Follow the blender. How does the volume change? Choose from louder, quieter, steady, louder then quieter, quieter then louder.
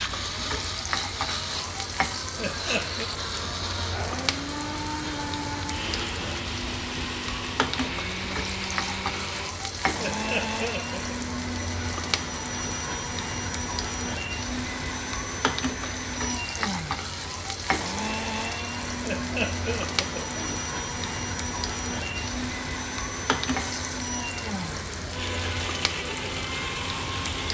steady.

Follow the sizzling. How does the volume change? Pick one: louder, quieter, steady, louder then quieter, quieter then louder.
steady.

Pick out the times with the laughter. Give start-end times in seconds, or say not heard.
2.4-3.1, 9.9-11.2, 19.0-20.6.